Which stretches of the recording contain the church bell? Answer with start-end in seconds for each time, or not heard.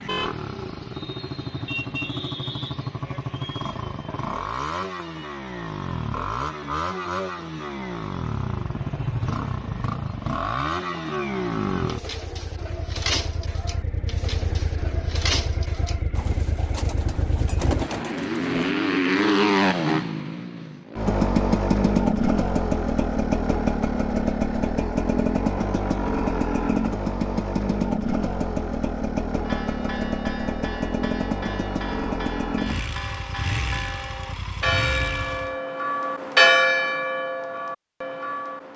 29.4-38.7.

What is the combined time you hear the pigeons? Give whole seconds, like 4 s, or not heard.
7 s.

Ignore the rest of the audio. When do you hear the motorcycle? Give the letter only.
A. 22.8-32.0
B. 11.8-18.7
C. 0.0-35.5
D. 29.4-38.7
C.